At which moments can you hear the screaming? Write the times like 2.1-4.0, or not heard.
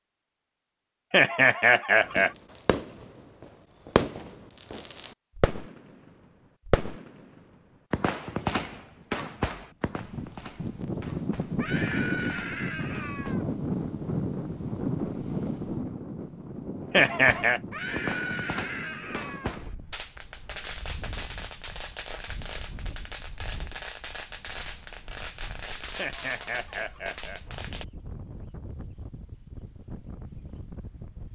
11.6-13.4, 17.7-19.6.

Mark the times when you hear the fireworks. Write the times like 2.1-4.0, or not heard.
2.0-13.3, 16.9-27.9.